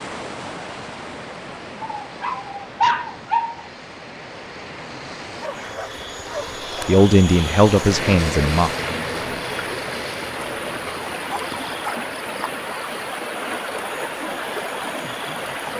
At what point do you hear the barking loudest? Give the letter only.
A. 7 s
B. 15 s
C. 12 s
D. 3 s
D.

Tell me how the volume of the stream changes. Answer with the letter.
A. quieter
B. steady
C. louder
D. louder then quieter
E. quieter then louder
C.